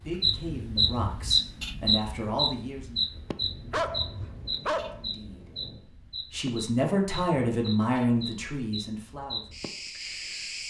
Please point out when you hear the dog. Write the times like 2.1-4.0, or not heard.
3.7-5.0.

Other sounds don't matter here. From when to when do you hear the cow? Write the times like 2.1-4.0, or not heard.
not heard.